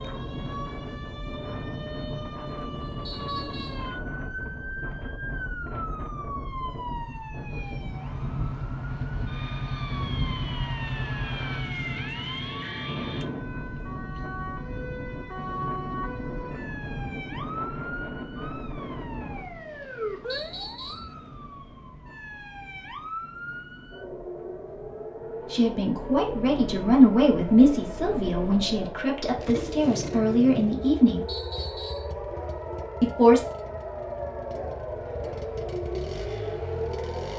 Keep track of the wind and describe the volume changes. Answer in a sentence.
The volume of the wind goes down.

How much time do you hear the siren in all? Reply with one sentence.
The siren can be heard for 37 seconds in total.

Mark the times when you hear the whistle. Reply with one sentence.
You can hear the whistle from 3.0 to 3.9 s, from 20.3 to 21.1 s and from 31.2 to 32.1 s.